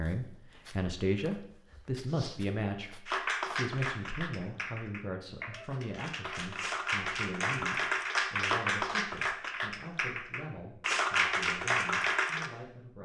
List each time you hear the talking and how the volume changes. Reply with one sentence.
The talking can be heard from 0.0 to 12.9 s, getting quieter.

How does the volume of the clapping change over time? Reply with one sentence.
The loudness of the clapping goes up.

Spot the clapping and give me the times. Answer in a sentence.
You can hear the clapping from 3.0 to 12.5 s.